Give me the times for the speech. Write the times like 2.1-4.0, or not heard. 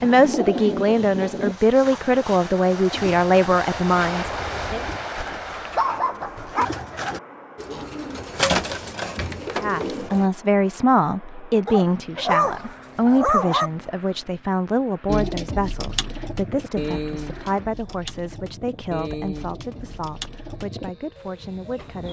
0.0-4.8, 9.6-22.0.